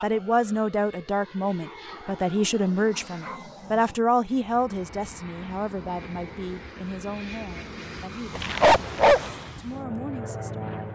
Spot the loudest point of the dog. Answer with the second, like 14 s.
9 s.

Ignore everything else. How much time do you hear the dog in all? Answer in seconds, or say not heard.
3 s.